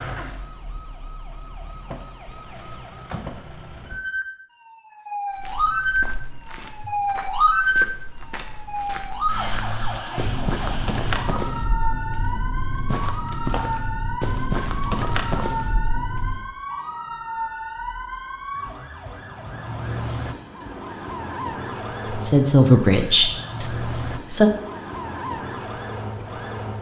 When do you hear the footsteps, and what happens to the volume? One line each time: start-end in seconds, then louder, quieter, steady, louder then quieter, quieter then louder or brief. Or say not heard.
5.3-16.4 louder.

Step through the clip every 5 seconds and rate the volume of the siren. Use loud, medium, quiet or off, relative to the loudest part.
quiet, loud, medium, medium, medium, medium.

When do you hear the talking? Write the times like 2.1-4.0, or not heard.
22.1-24.5.